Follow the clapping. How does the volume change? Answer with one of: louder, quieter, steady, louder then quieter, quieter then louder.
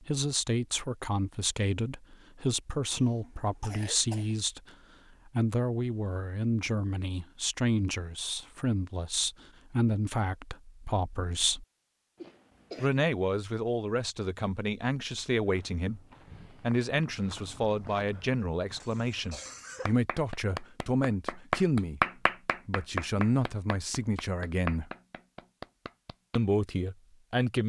louder then quieter.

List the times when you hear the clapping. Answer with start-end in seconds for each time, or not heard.
19.9-26.4.